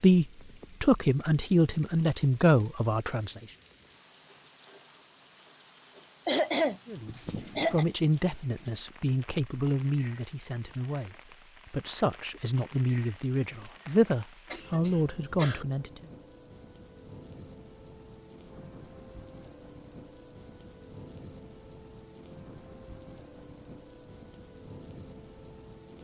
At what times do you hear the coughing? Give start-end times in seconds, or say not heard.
6.2-7.8, 14.5-15.7.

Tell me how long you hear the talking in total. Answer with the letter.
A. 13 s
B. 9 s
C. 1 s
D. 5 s
A.